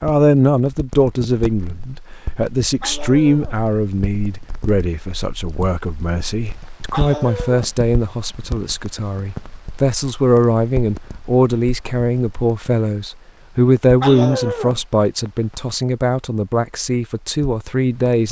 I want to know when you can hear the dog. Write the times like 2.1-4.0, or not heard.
2.8-3.6, 6.9-7.7, 14.0-14.8.